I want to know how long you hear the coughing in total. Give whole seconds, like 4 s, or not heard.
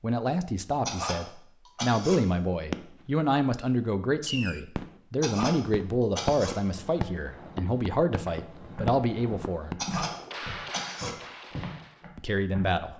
4 s.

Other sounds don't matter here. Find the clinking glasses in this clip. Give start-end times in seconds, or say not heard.
not heard.